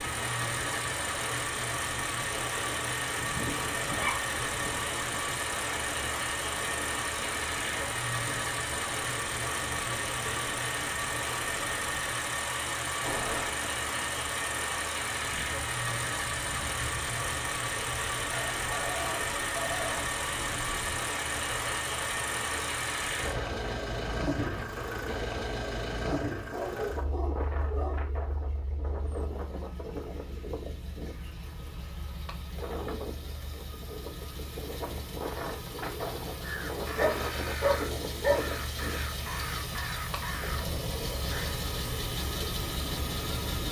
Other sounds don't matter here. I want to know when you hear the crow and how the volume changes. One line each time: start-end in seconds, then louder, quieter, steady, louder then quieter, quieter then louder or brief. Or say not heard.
36.4-41.6 steady.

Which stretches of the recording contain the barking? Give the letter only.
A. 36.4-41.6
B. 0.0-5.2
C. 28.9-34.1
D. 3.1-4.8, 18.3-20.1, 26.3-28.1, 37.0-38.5
D.